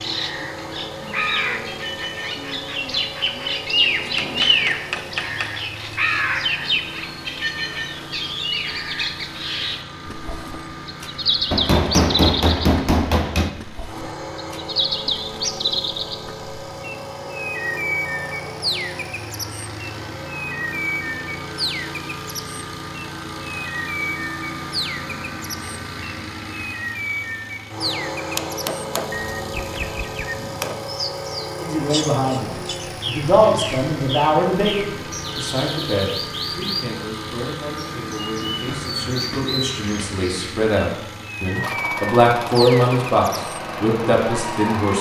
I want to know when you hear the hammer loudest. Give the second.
12 s.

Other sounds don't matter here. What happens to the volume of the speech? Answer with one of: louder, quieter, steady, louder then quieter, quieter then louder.
quieter then louder.